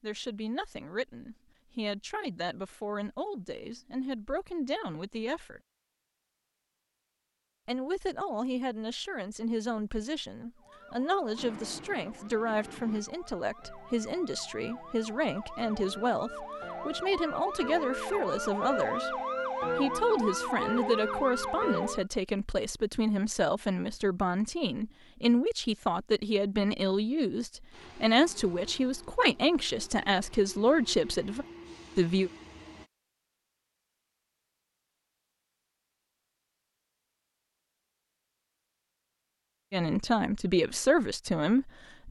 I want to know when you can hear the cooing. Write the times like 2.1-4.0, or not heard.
not heard.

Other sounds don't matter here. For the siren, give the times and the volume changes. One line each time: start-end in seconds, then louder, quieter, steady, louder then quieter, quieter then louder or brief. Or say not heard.
10.6-22.1 louder.